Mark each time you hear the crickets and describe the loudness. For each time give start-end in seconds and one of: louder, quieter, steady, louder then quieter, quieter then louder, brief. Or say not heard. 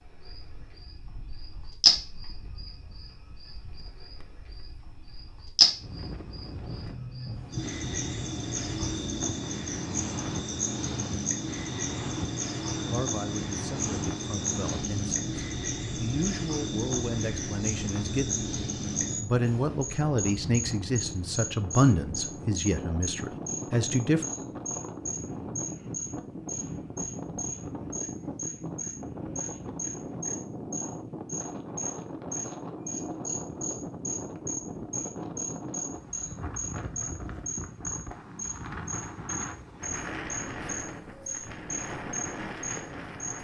0.2-43.3 quieter.